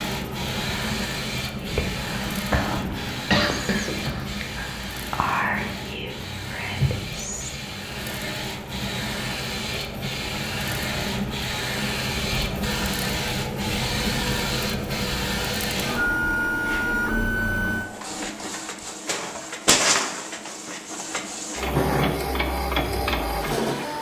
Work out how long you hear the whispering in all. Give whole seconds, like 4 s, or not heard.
6 s.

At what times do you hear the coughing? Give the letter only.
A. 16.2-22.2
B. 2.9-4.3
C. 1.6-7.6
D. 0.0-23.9
B.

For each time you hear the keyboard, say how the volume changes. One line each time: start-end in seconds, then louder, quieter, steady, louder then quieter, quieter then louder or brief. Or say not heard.
not heard.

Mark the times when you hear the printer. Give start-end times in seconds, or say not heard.
0.0-23.9.